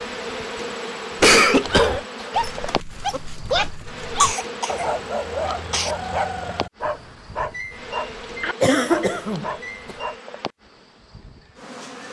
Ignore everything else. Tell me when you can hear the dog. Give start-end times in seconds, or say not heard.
1.6-10.2.